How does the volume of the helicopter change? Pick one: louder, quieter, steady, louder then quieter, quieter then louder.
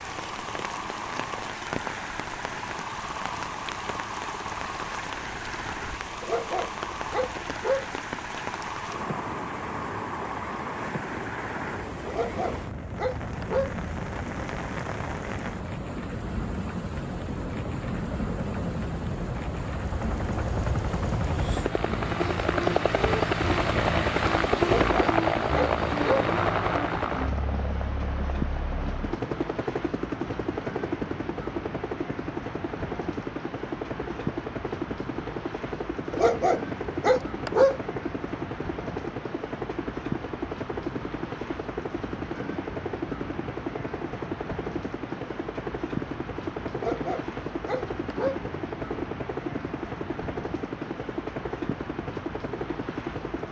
louder then quieter.